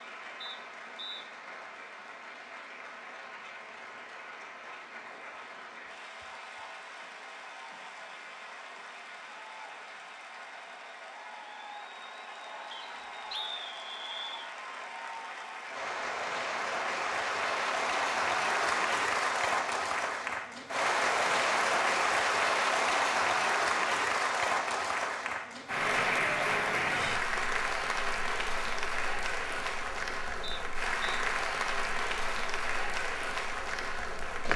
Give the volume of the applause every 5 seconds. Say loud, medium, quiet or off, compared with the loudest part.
quiet, quiet, quiet, loud, loud, loud, medium.